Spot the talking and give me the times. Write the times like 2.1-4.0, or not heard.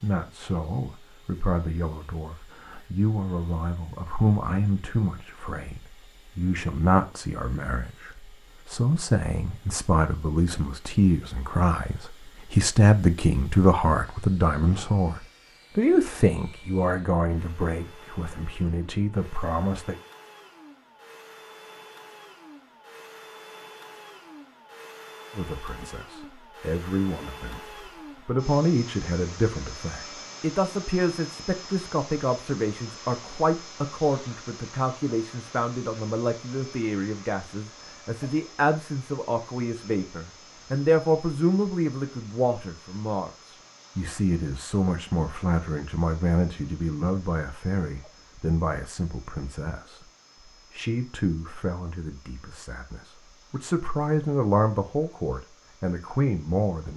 0.0-19.9, 25.4-27.6, 28.2-50.0, 50.7-56.9.